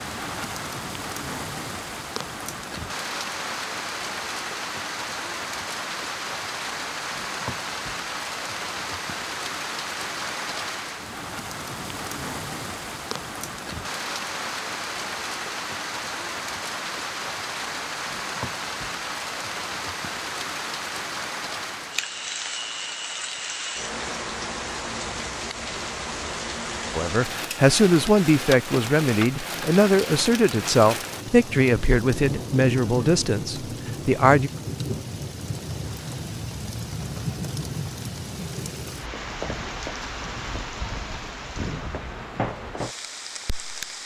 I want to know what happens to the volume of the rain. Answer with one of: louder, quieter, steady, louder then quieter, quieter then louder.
steady.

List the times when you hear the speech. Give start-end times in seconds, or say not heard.
26.9-34.5.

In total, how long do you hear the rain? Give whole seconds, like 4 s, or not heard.
44 s.